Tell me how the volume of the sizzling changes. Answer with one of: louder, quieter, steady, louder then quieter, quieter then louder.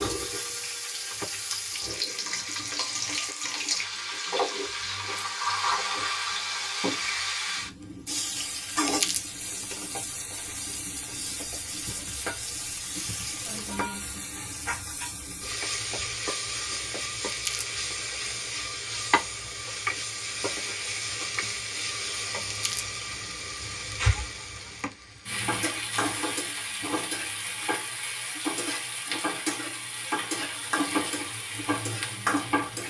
steady.